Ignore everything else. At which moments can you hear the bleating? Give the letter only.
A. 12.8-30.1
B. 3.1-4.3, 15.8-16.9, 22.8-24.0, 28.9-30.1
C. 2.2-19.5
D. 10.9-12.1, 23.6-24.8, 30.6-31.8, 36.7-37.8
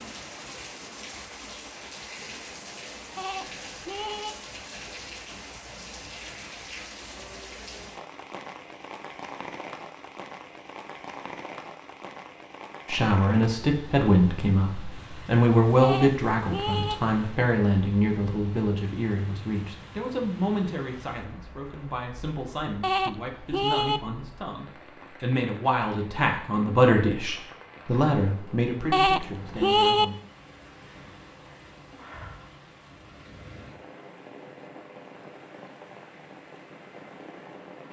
B.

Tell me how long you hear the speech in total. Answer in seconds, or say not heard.
17 s.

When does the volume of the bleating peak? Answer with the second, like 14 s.
30 s.